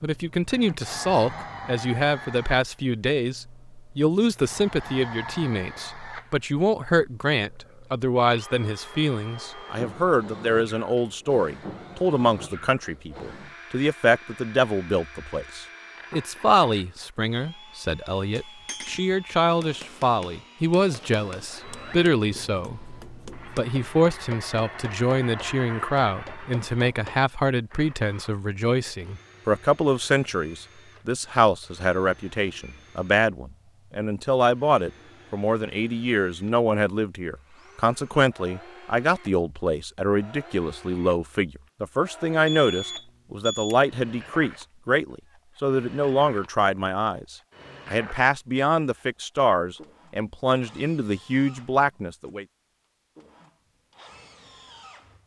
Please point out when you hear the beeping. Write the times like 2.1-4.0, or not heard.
42.5-43.8.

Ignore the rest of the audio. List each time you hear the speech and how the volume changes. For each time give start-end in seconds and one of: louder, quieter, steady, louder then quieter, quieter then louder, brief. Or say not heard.
0.0-52.5 steady.